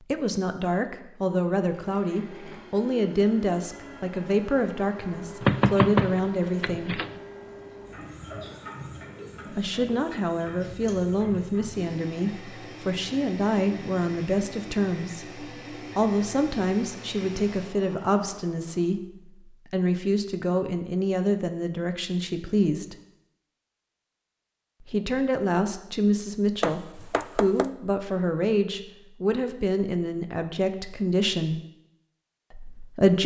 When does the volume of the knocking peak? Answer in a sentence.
The volume of the knocking peaks at 6 seconds.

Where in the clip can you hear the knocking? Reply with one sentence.
The knocking can be heard from 5.4 to 7.1 s and from 26.6 to 27.6 s.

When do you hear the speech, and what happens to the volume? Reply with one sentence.
The speech can be heard from 0.0 to 7.0 s, at a steady volume; from 9.5 to 22.9 s, at a steady volume; from 24.8 to 31.6 s, at a steady volume; and briefly from 32.5 to 33.2 s.